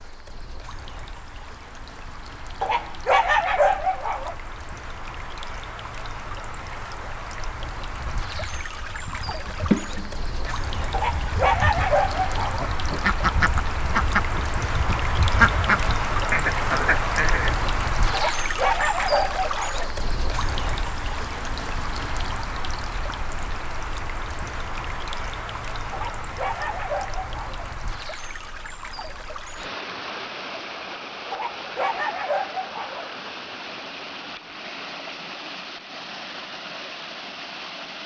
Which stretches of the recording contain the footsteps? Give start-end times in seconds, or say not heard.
not heard.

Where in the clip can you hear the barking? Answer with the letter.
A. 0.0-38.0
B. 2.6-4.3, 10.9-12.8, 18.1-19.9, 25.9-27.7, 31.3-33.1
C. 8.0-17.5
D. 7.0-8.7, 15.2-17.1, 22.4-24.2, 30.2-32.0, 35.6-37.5
B.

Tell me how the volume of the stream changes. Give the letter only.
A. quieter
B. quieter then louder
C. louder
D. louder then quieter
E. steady
D.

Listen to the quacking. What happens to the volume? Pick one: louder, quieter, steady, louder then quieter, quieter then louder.
quieter then louder.